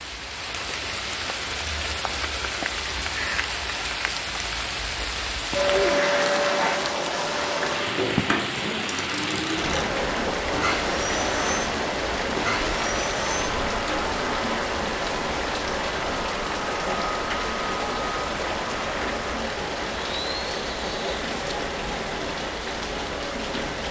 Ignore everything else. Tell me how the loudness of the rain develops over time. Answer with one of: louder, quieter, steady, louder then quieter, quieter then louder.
steady.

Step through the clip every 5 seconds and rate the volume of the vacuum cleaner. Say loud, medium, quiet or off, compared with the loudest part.
off, loud, loud, medium, medium.